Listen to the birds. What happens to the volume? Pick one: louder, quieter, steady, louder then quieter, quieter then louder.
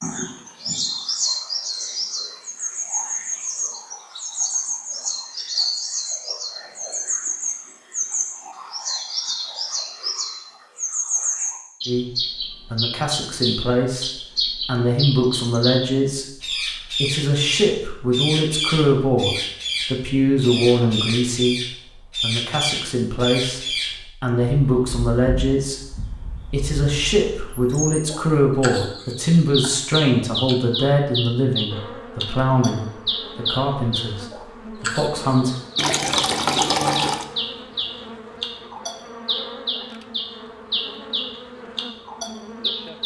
steady.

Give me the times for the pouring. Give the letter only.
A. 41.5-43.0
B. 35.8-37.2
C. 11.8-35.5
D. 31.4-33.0
B.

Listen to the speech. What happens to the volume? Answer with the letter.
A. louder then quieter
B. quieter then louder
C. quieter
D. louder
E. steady
E.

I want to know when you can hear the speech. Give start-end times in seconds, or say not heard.
11.8-35.5.